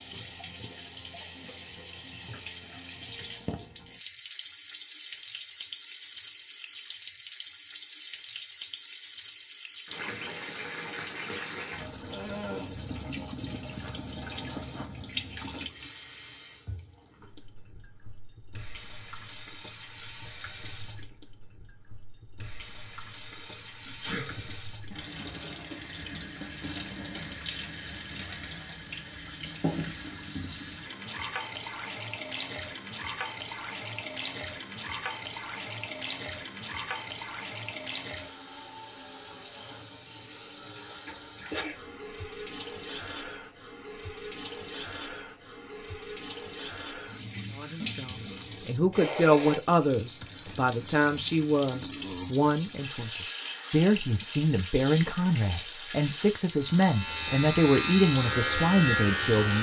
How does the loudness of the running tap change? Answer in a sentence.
The loudness of the running tap stays about the same.